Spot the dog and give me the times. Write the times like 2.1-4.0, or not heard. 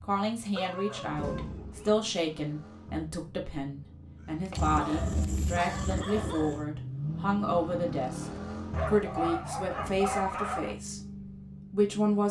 0.5-1.9, 4.5-6.7, 8.7-10.8.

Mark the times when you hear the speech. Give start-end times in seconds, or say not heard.
0.0-11.0, 11.7-12.2.